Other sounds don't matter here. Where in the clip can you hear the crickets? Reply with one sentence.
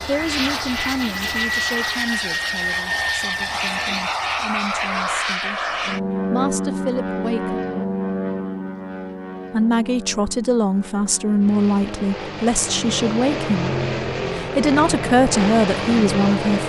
The crickets can't be heard in this clip.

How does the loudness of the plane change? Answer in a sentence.
The loudness of the plane goes down, then up.